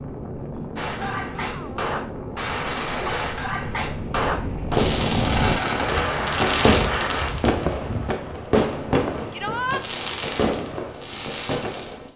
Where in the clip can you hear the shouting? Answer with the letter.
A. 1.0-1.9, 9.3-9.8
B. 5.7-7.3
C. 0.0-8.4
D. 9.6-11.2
A.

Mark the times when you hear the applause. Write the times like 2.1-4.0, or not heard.
5.7-7.3.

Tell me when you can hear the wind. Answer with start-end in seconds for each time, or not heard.
0.0-8.4.